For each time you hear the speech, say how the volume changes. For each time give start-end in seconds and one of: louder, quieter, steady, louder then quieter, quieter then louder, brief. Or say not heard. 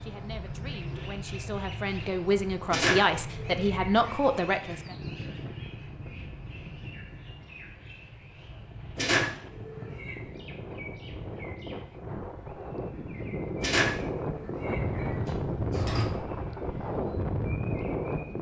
0.0-5.0 louder.